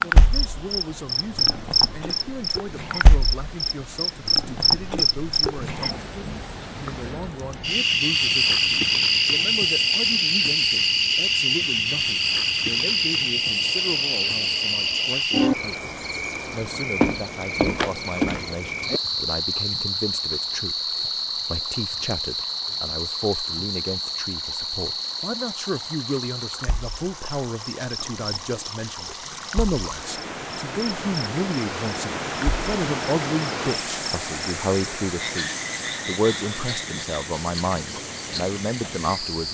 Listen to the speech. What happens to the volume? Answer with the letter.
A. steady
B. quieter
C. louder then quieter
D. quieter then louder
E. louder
E.